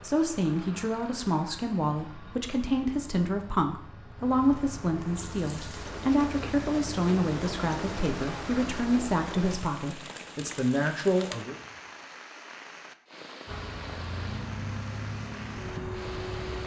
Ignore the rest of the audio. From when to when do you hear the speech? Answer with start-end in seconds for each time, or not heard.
0.0-11.6.